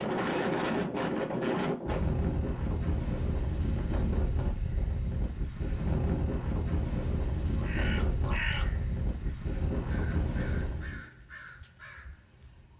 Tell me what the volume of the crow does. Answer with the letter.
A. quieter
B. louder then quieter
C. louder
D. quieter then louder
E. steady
D.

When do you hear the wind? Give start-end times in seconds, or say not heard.
0.0-11.1.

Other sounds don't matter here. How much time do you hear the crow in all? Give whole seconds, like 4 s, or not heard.
5 s.